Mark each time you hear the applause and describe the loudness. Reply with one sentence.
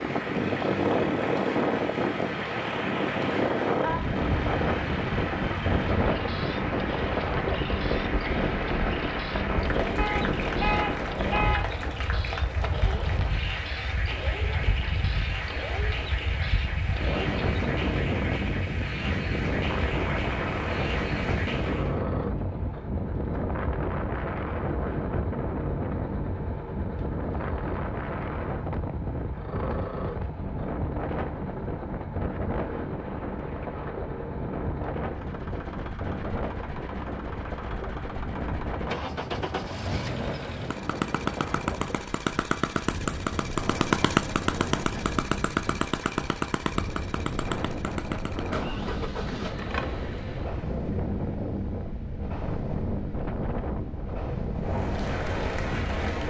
The applause can be heard from 0.0 to 22.0 s, at a steady volume; and briefly from 54.5 to 56.2 s.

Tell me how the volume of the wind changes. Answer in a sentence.
The loudness of the wind goes down.